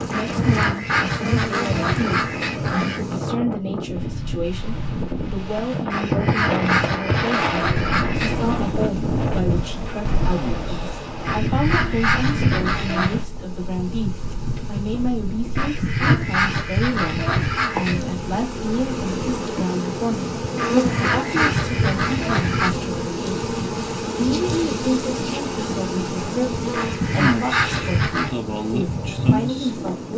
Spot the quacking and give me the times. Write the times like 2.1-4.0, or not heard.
0.1-3.0, 5.9-8.4, 11.2-13.2, 15.6-18.0, 20.6-22.8, 26.7-28.4.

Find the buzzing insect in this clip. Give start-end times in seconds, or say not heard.
0.0-3.2, 8.2-30.1.